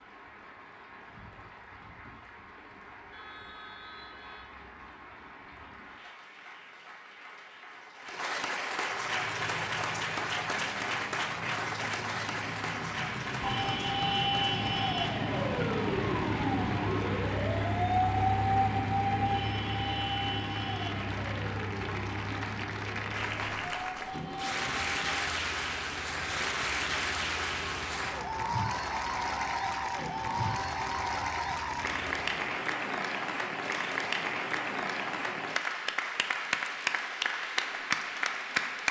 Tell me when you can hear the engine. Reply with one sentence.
You can hear the engine from 8.9 to 32.5 s.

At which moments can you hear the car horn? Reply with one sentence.
The car horn can be heard from 3.1 to 4.6 s.